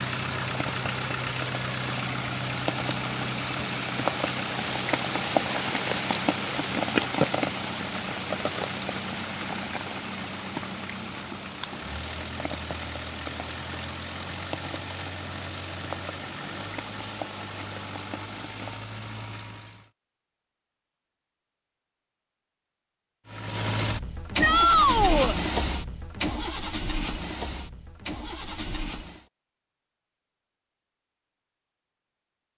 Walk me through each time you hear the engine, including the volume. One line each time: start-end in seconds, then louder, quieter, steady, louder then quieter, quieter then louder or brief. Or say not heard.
0.0-19.9 quieter
23.2-29.2 quieter.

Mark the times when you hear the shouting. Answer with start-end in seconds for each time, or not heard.
24.4-25.4.